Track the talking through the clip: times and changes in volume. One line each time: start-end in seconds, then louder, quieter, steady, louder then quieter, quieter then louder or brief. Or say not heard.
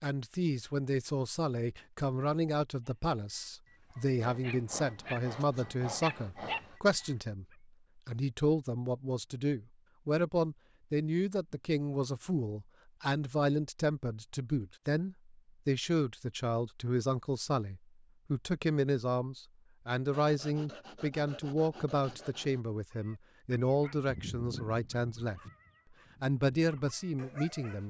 0.0-7.5 steady
8.1-25.4 steady
26.2-27.8 brief.